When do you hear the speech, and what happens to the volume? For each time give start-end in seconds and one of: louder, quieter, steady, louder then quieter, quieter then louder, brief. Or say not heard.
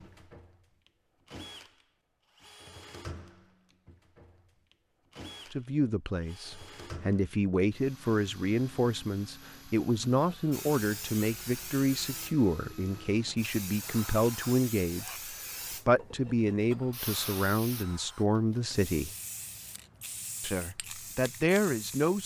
5.5-19.1 steady
20.4-22.2 brief.